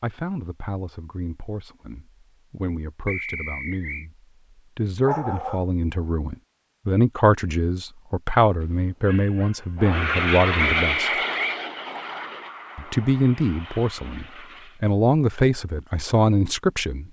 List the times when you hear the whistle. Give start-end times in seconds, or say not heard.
3.0-4.0, 10.6-11.6.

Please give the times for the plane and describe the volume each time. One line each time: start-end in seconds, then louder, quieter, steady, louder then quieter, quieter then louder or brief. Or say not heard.
9.8-14.8 quieter.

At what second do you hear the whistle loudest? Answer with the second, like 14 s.
11 s.